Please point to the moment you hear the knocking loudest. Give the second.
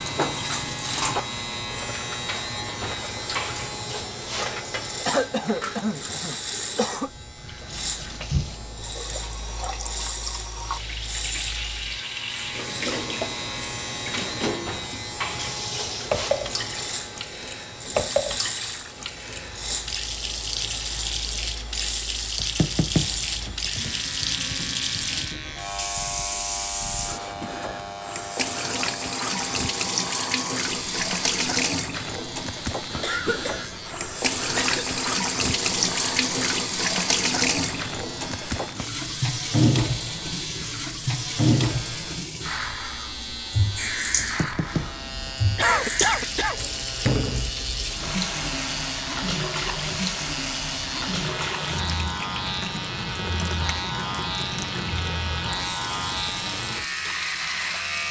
23 s.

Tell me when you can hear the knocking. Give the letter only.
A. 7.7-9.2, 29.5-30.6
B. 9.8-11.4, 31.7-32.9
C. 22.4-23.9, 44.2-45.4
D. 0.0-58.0
C.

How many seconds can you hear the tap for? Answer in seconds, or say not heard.
58 s.